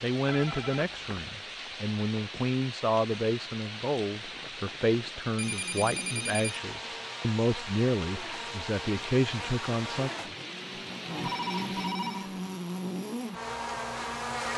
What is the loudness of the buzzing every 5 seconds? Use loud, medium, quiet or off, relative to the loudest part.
off, medium, loud.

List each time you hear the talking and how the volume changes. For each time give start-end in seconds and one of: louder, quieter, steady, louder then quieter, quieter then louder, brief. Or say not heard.
0.0-10.1 steady.